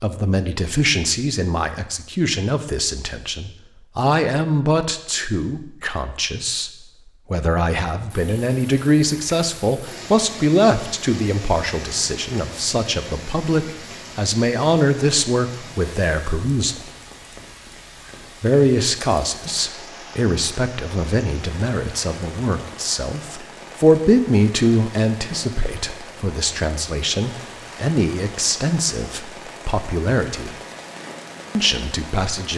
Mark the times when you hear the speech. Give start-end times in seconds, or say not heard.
0.0-16.9, 18.4-30.6, 31.6-32.5.